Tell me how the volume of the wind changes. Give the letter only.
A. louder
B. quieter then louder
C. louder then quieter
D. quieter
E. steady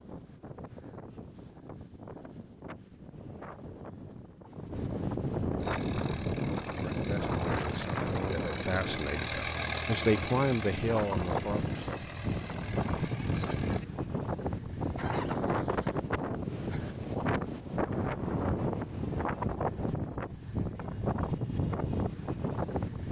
A.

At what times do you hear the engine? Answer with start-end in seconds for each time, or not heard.
5.6-16.1.